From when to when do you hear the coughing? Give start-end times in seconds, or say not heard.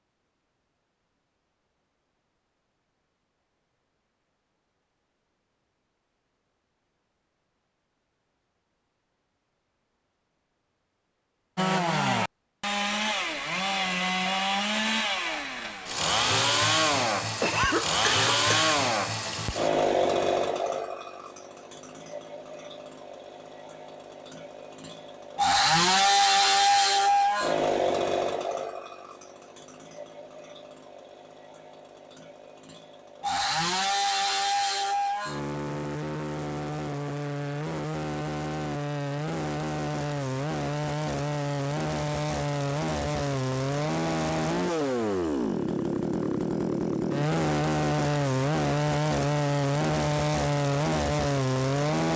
17.4-18.8.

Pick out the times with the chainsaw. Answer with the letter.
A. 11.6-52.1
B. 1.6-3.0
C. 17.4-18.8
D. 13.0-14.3
A.